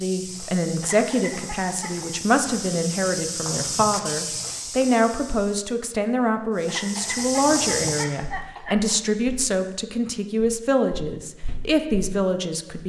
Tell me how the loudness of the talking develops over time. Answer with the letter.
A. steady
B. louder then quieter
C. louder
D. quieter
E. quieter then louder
A.